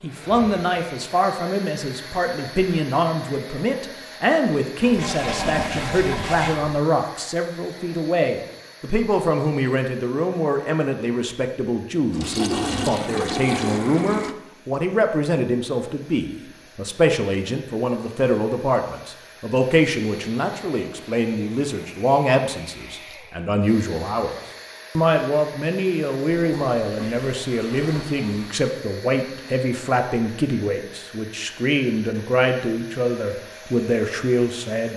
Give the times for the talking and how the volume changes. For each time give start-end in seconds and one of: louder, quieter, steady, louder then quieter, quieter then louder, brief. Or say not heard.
0.0-24.4 steady
24.9-34.9 steady.